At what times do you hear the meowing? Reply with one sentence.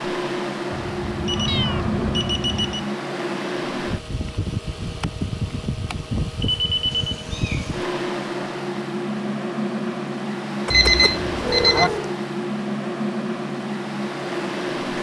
You can hear the meowing from 1.4 to 2.2 s, from 6.9 to 7.8 s and from 10.7 to 12.2 s.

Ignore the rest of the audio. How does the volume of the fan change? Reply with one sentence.
The volume of the fan stays about the same.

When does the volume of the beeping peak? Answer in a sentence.
The volume of the beeping peaks at 11 seconds.